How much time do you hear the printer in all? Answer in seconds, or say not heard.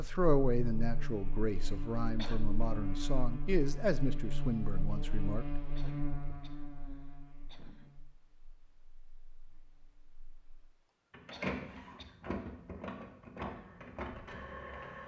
4 s.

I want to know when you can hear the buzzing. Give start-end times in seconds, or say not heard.
0.0-10.8.